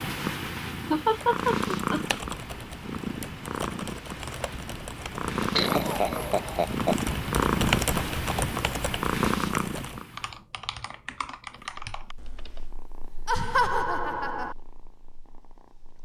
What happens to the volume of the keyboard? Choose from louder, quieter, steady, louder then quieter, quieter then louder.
louder then quieter.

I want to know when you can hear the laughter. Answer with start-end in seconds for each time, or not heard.
0.9-2.2, 5.5-7.0, 13.2-14.6.